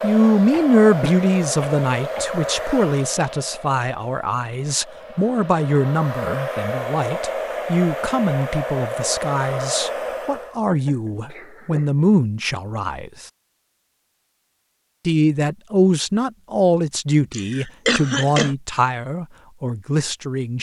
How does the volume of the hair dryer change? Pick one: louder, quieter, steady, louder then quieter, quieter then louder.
quieter then louder.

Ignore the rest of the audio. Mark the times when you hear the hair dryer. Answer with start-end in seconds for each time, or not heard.
0.0-10.6.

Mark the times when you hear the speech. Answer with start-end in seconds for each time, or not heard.
0.0-13.2, 15.1-20.5.